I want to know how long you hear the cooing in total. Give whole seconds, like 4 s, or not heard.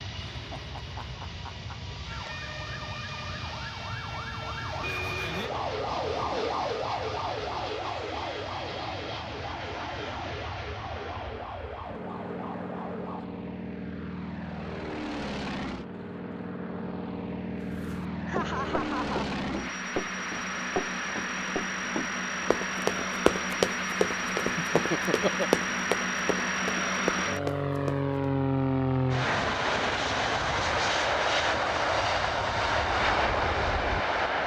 not heard.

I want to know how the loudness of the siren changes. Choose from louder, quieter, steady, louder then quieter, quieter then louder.
louder then quieter.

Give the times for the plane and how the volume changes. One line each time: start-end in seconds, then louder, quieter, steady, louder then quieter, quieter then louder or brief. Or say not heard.
0.0-34.4 louder.